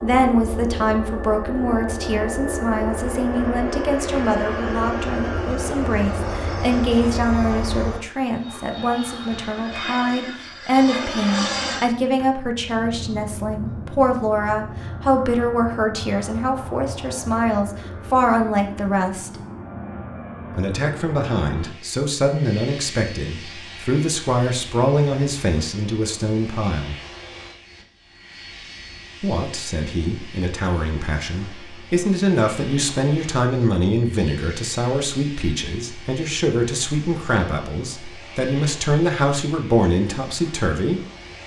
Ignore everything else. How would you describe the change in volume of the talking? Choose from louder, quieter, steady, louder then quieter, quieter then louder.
steady.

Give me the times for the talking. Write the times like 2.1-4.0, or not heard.
0.0-19.3, 20.5-27.0, 29.2-41.0.